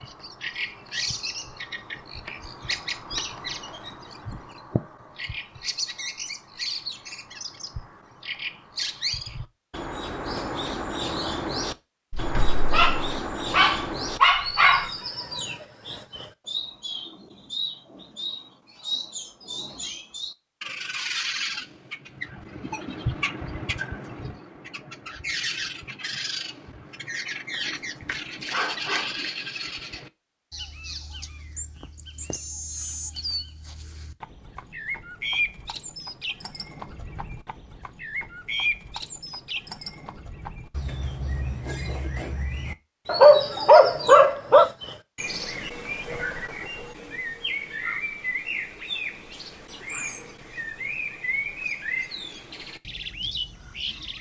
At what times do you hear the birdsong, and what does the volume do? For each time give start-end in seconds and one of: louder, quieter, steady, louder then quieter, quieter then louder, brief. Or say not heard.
0.0-54.1 steady.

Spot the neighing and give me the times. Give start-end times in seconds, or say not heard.
not heard.